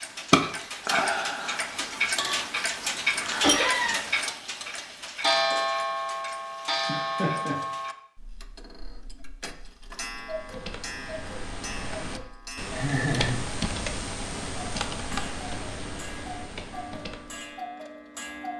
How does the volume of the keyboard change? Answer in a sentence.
The loudness of the keyboard goes up, then down.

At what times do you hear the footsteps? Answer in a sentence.
You can't hear the footsteps here.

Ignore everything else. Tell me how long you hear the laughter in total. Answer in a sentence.
The laughter can be heard for 2 seconds in total.